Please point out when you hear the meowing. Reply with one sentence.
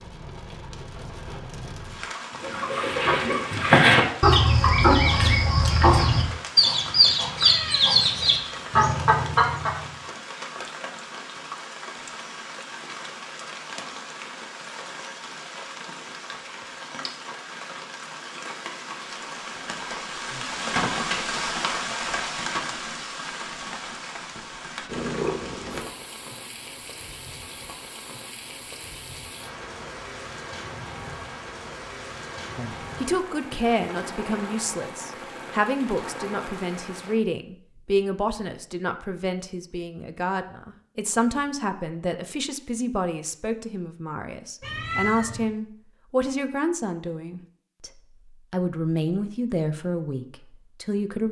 The meowing can be heard from 7.3 to 8.8 s, from 24.9 to 25.9 s and from 44.6 to 45.5 s.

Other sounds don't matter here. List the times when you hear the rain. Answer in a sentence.
You can hear the rain from 0.0 to 37.2 s.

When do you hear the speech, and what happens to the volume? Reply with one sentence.
The speech can be heard from 32.5 to 51.2 s, at a steady volume.